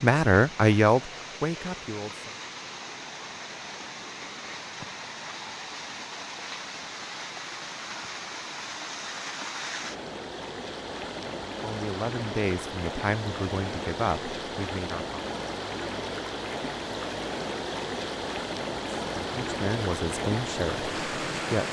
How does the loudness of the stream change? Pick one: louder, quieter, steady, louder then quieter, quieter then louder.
louder.